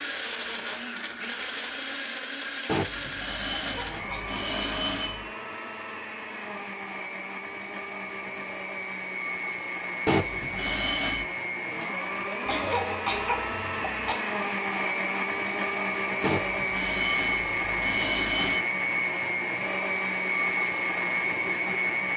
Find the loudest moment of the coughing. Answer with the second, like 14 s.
13 s.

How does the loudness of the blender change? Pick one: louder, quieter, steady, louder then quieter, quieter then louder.
louder.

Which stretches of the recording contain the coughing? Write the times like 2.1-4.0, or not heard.
3.5-4.3, 12.4-14.2.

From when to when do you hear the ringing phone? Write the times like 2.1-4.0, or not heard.
2.6-5.3, 10.1-11.3, 16.2-18.6.